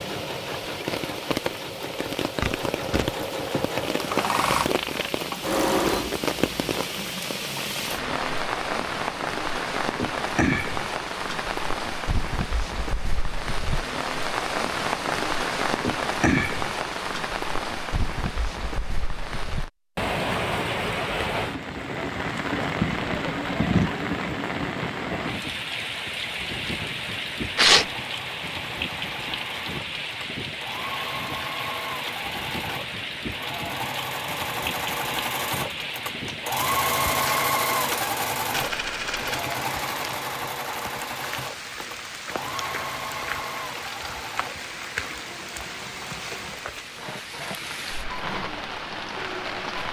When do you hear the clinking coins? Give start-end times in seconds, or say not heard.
4.6-5.2, 22.8-23.9, 38.5-39.4.